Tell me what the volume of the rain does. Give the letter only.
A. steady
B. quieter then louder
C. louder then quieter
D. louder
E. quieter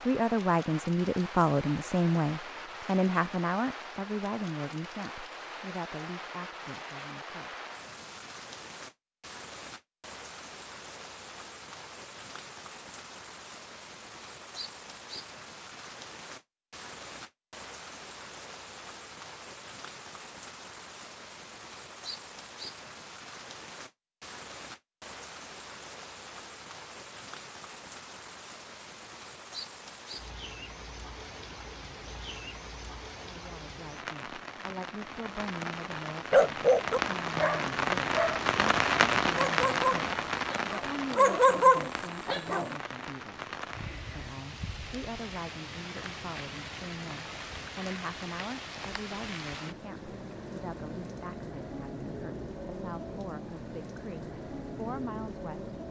C.